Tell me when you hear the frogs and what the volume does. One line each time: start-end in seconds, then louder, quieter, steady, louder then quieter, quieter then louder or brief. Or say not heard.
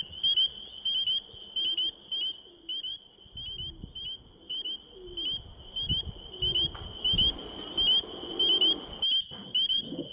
0.0-10.0 quieter then louder.